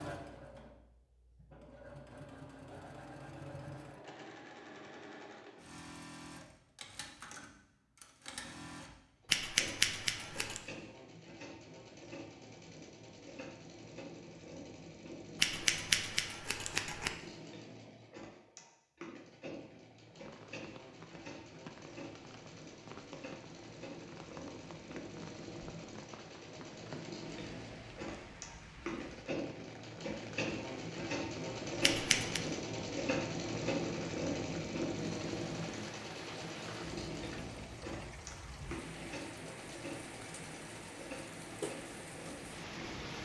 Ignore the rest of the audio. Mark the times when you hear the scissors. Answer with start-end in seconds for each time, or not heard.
9.3-10.6, 15.4-17.1, 31.8-32.4.